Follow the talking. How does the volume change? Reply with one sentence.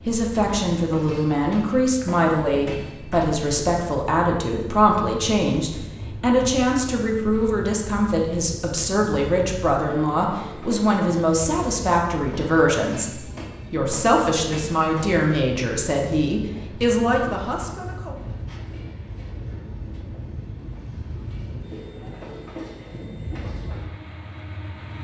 The loudness of the talking stays about the same.